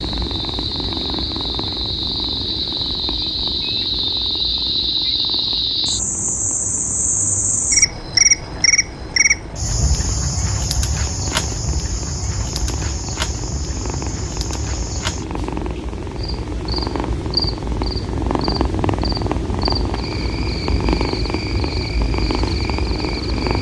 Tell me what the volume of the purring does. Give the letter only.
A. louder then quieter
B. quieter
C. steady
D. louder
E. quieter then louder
E.